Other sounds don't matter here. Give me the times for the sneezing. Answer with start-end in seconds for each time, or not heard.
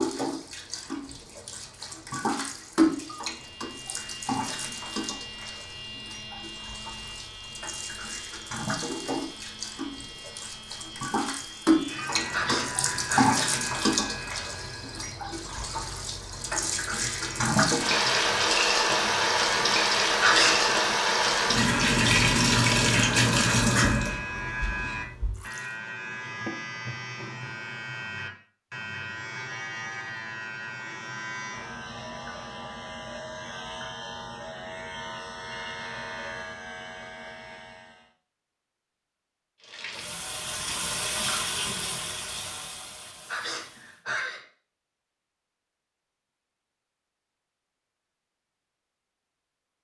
12.3-13.3, 20.2-20.8, 43.2-44.5.